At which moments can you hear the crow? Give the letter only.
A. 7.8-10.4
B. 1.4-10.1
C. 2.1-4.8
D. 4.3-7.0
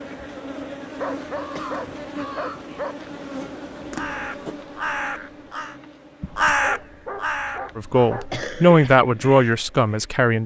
B.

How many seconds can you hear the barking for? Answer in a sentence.
The barking can be heard for 4 seconds in total.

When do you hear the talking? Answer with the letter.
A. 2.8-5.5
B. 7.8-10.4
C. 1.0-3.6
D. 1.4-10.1
B.